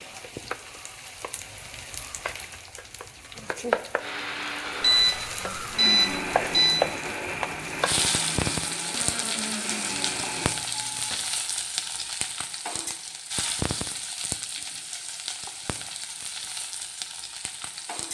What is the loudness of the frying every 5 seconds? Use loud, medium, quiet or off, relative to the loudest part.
medium, loud, loud, medium.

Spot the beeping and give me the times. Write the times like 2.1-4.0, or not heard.
4.8-6.8, 9.8-11.2.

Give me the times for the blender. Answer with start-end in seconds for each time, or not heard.
4.0-10.6.